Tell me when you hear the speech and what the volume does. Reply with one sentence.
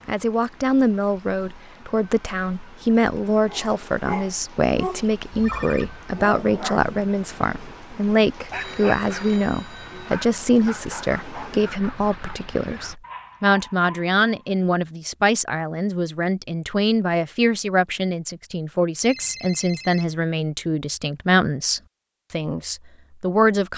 The speech can be heard from 0.1 to 23.7 s, at a steady volume.